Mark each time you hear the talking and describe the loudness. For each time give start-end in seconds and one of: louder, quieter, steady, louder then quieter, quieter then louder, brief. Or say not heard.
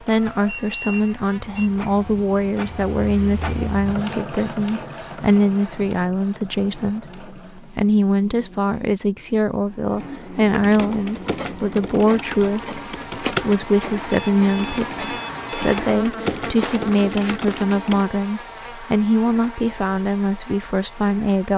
0.1-21.5 steady.